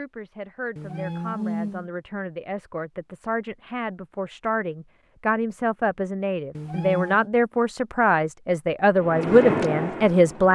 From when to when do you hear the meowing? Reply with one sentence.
The meowing can be heard from 0.8 to 1.9 s and from 6.5 to 7.3 s.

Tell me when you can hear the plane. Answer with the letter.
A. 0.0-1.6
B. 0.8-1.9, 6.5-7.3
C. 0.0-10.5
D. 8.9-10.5
D.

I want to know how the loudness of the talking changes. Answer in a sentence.
The loudness of the talking goes up.